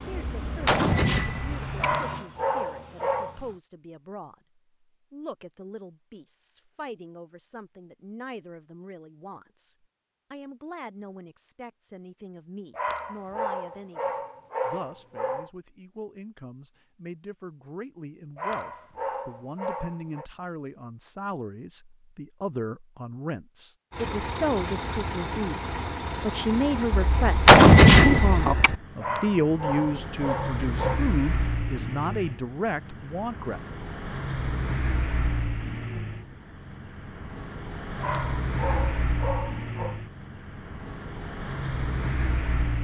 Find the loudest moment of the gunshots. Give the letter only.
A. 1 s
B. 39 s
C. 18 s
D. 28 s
D.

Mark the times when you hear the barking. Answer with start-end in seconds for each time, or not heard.
1.8-3.4, 12.7-15.5, 18.4-20.2, 28.9-31.0, 38.0-40.0.